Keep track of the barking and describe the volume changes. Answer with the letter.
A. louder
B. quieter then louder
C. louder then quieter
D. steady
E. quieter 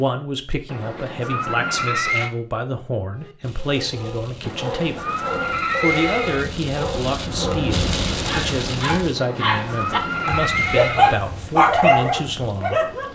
A.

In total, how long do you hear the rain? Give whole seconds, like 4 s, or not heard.
10 s.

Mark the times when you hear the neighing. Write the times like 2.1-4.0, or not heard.
0.7-2.3, 4.4-6.5, 9.2-11.2.